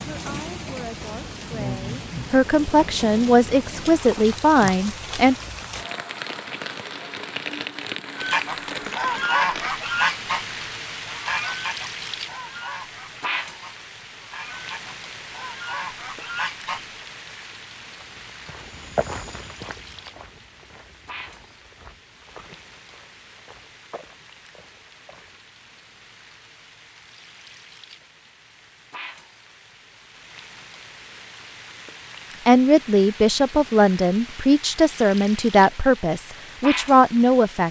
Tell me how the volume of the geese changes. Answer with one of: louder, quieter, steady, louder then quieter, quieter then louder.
quieter then louder.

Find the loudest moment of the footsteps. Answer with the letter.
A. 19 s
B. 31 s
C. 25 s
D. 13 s
A.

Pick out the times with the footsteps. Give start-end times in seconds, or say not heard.
17.9-25.4.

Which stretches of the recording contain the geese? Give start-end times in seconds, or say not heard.
8.2-17.0.